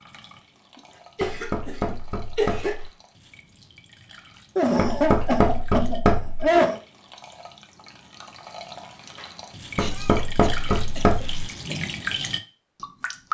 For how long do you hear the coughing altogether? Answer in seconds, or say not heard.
6 s.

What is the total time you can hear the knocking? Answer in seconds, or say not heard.
5 s.